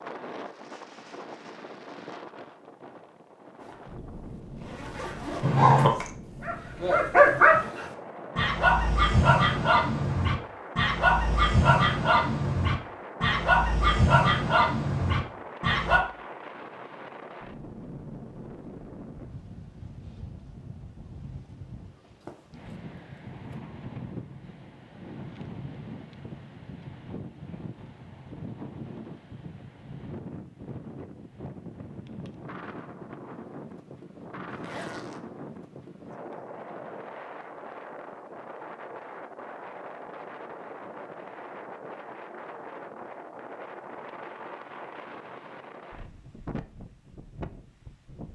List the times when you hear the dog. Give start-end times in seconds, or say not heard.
5.4-16.0.